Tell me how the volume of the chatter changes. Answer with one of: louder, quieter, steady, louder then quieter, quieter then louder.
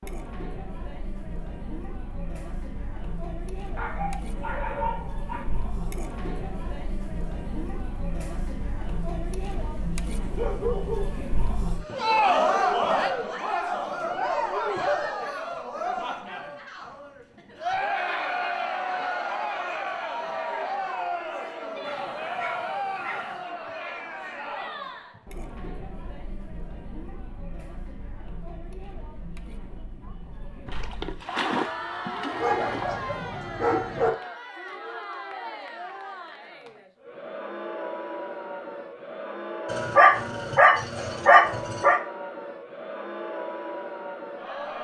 louder then quieter.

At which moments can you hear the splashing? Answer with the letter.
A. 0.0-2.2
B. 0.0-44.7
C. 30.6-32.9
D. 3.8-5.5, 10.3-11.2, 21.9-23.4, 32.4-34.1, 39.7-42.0
C.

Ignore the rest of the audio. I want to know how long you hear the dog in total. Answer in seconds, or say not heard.
8 s.